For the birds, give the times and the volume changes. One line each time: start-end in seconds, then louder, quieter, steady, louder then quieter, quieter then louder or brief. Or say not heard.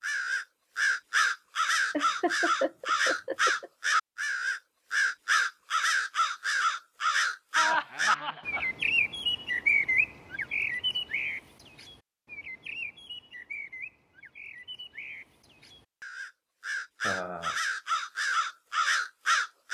0.0-19.6 quieter then louder.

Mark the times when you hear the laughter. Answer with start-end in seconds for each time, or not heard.
1.9-3.7, 7.5-8.7, 17.0-17.6.